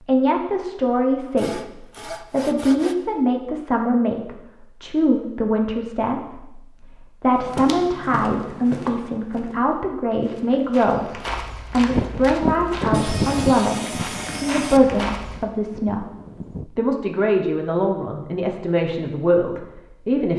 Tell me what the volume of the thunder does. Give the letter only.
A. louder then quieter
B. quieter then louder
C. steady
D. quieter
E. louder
D.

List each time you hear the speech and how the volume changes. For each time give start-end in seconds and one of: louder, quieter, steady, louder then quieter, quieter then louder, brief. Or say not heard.
0.0-20.3 steady.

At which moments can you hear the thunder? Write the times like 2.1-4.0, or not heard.
11.9-16.6.